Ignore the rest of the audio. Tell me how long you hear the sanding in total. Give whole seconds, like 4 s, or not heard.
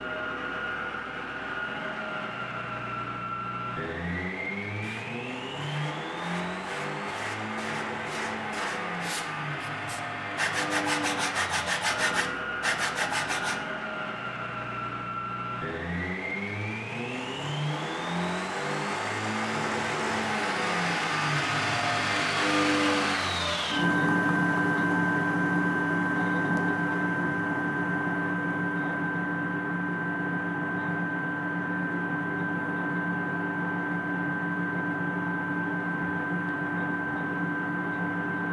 9 s.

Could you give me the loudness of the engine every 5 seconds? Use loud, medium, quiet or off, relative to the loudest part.
medium, medium, medium, medium, loud, loud, loud, loud.